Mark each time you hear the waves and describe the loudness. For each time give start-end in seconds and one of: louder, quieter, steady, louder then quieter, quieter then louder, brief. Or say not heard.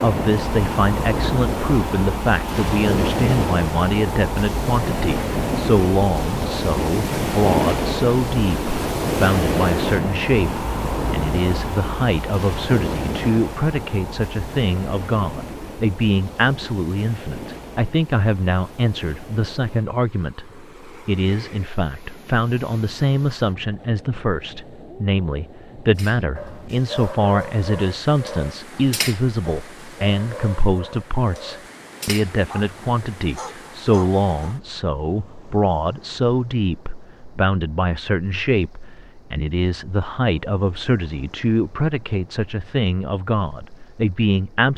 0.0-44.7 quieter.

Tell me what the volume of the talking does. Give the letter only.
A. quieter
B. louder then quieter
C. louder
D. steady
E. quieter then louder
D.